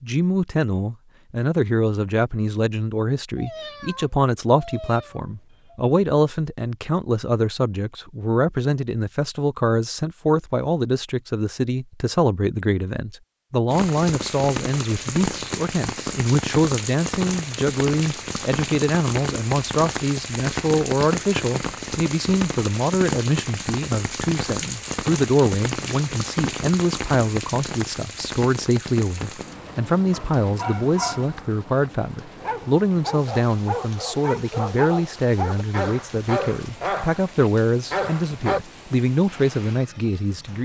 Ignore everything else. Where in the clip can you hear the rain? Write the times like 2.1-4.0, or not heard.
13.7-40.6.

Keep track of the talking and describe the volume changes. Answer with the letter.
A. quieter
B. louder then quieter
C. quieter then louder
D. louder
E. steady
E.